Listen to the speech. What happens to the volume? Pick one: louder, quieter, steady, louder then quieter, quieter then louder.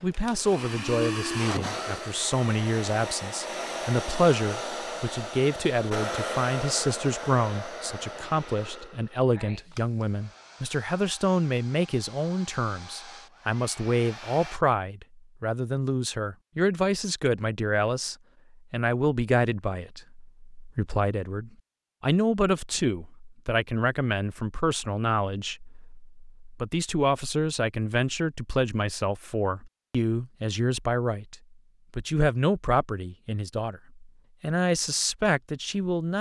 steady.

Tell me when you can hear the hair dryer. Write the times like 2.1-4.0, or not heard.
0.0-14.6.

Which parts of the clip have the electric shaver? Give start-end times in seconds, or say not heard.
not heard.